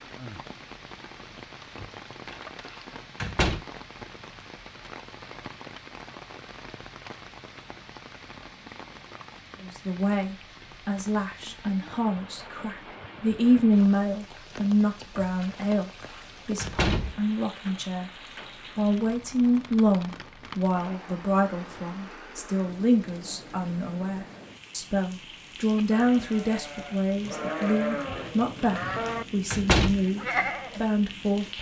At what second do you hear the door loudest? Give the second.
30 s.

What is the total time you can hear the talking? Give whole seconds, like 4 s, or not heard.
22 s.